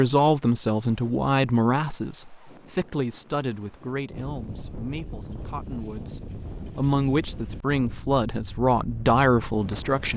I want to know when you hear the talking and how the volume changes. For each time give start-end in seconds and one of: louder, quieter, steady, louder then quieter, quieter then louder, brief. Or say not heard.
0.0-10.1 quieter then louder.